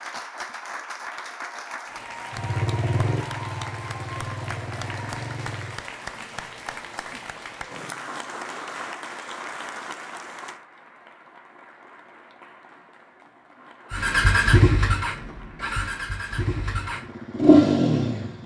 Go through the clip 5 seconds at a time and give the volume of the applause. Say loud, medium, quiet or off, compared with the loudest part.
loud, loud, medium, quiet.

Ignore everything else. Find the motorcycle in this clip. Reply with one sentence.
You can hear the motorcycle from 2.3 to 5.8 s and from 13.9 to 18.4 s.